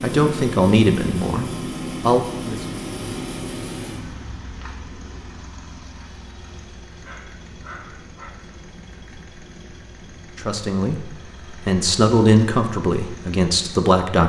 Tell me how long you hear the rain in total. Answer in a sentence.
The rain can't be heard in this clip.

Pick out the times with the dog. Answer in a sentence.
The dog can be heard from 7.0 to 8.3 s.